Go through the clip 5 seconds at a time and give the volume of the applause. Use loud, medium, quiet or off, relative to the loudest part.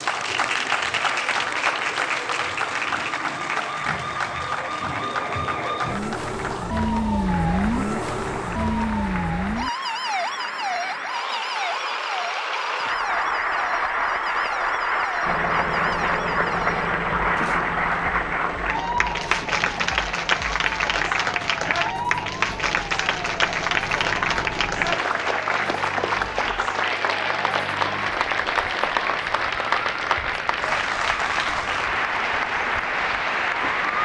loud, medium, loud, loud, loud, loud, loud.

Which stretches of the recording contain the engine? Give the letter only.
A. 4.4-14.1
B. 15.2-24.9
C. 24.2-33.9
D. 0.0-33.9
B.